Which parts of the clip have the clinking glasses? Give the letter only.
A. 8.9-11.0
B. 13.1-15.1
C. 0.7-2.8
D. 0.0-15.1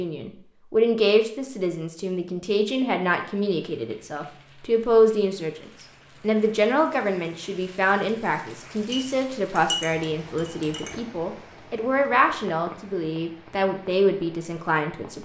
A.